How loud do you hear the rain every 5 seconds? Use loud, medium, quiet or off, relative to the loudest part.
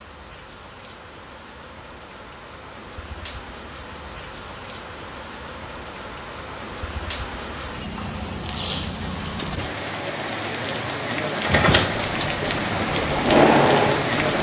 quiet, medium, loud.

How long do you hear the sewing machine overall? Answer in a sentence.
You can hear the sewing machine for 3 seconds altogether.